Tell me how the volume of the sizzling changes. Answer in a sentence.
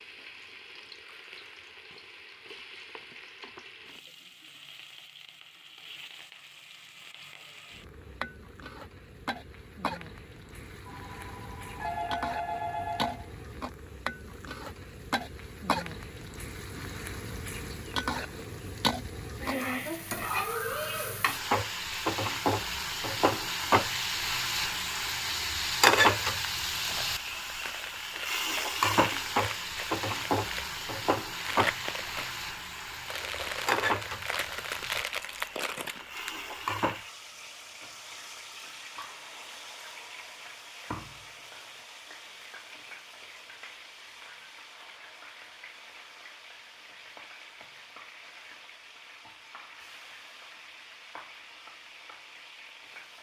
The loudness of the sizzling goes up, then down.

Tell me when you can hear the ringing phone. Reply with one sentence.
The ringing phone can be heard from 10.8 to 13.3 s.